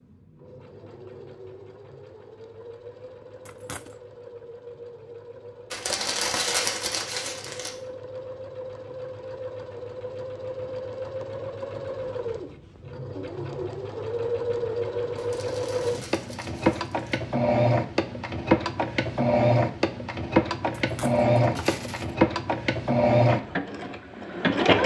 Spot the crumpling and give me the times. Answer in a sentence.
The crumpling can be heard from 5.7 to 7.7 s and from 15.2 to 17.2 s.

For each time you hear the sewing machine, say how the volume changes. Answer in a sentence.
The sewing machine can be heard from 0.0 to 24.8 s, getting louder.